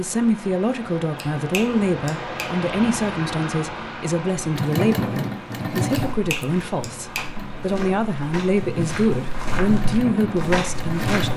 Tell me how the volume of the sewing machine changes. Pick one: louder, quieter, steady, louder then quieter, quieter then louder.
quieter then louder.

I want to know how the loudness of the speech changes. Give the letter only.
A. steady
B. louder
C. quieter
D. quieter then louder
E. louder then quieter
A.